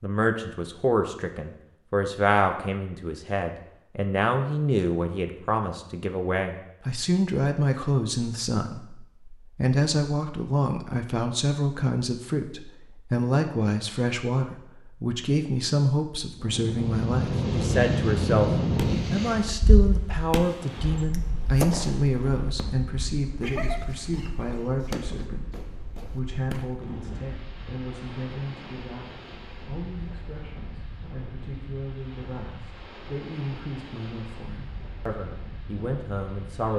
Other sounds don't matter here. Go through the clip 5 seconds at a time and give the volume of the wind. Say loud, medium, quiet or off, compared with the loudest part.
off, off, off, loud, quiet, quiet, quiet, quiet.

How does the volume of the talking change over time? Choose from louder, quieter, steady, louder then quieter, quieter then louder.
quieter.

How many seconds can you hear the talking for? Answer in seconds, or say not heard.
36 s.